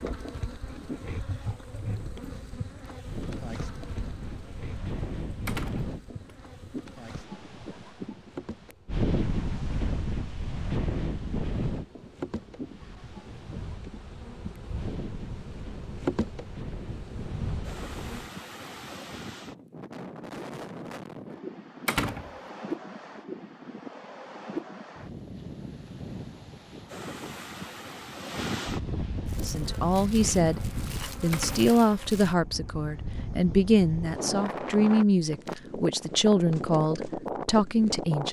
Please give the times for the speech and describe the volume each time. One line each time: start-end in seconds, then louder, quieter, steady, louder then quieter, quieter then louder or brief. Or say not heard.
29.4-38.2 steady.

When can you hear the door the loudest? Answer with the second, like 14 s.
22 s.